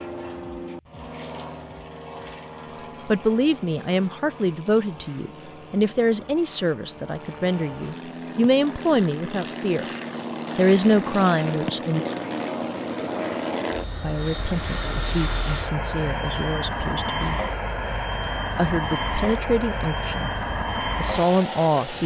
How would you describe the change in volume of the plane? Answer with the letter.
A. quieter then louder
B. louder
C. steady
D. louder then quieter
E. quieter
B.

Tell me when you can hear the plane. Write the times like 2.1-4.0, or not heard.
0.0-22.0.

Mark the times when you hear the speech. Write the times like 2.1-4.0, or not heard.
3.0-9.8, 10.6-12.1, 14.0-17.4, 18.6-20.3, 20.9-22.0.